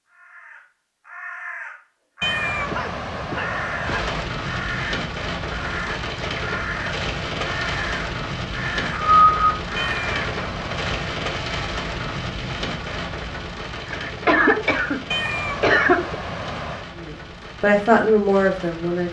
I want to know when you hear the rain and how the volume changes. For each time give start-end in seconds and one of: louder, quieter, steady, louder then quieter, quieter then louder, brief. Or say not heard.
3.8-19.0 quieter.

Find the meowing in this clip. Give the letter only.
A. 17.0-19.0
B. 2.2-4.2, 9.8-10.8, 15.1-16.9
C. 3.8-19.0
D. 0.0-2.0
B.